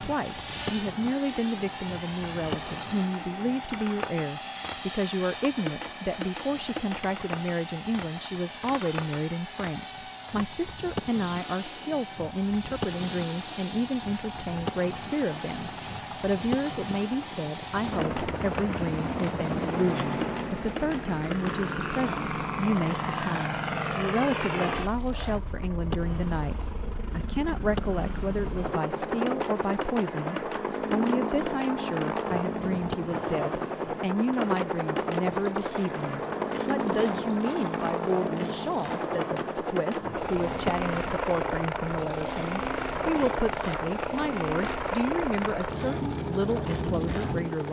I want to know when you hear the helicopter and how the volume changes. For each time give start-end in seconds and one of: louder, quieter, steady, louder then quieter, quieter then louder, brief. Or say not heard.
0.0-47.6 steady.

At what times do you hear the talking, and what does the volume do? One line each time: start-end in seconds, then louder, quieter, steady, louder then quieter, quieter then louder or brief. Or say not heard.
0.0-47.6 steady.